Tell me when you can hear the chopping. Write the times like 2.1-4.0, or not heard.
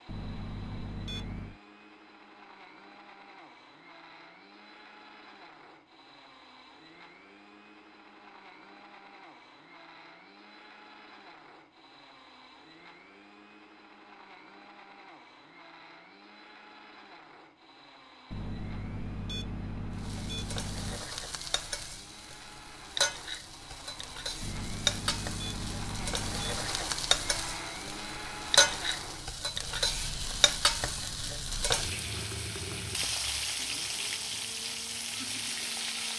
not heard.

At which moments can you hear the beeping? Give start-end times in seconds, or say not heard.
0.1-1.6, 18.3-21.1, 24.4-26.7.